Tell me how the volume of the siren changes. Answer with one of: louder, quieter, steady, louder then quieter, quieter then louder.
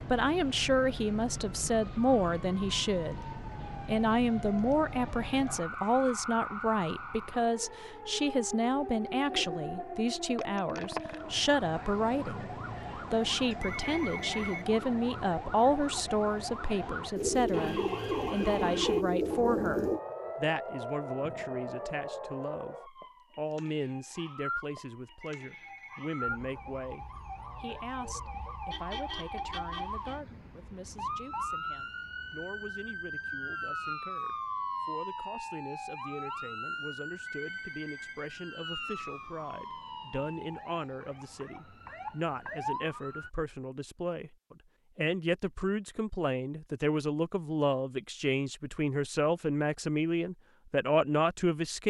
steady.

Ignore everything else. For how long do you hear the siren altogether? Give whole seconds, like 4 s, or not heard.
43 s.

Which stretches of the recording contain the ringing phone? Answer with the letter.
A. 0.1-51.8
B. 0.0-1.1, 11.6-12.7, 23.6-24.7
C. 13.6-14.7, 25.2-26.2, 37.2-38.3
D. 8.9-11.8
C.